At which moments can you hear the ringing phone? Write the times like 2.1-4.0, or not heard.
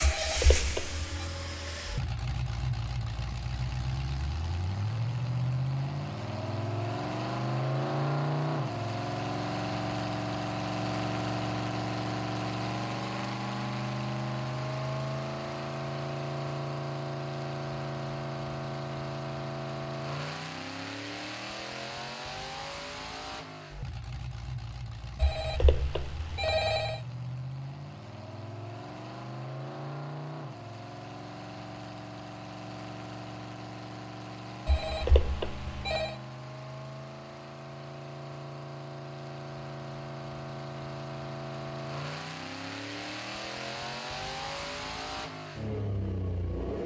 0.0-1.2, 25.2-27.0, 34.6-36.1.